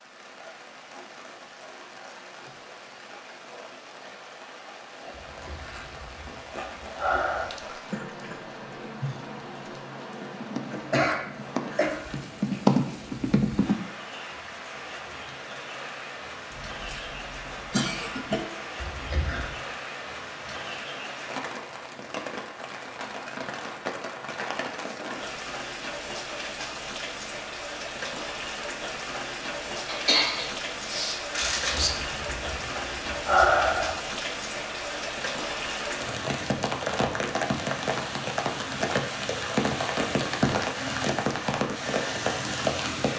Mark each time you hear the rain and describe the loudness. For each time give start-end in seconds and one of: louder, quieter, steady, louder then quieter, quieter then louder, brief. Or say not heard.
0.0-43.1 louder.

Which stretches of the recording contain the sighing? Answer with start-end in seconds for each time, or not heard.
5.1-7.5, 18.8-19.6, 31.6-34.0.